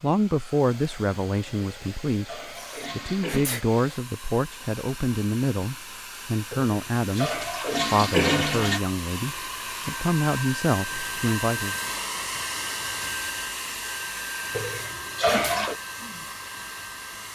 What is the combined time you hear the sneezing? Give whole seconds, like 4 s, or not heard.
2 s.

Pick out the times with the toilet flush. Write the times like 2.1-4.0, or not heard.
1.6-3.5, 6.5-8.8, 14.6-15.8.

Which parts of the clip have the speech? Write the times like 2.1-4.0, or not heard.
0.0-11.8.